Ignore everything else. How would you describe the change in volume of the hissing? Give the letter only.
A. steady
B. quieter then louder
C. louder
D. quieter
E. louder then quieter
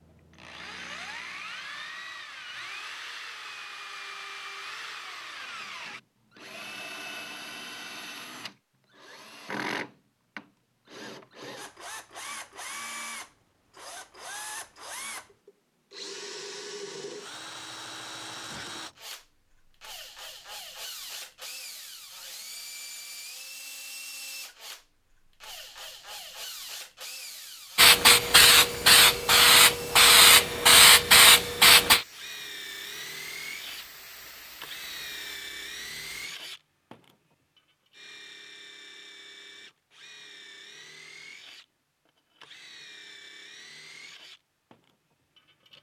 D.